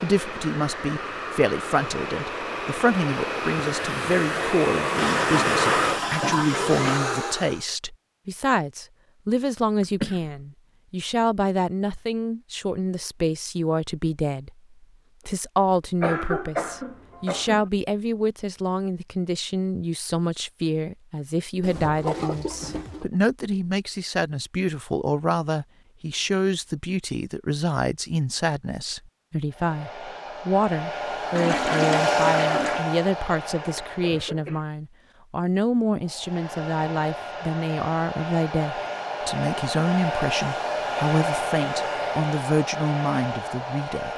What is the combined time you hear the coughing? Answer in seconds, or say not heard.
3 s.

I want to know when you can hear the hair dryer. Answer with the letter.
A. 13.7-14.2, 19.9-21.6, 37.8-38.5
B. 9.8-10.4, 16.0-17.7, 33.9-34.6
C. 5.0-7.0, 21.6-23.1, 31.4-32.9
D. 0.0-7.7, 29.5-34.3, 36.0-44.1
D.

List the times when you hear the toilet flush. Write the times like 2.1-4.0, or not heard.
5.0-7.0, 21.6-23.1, 31.4-32.9.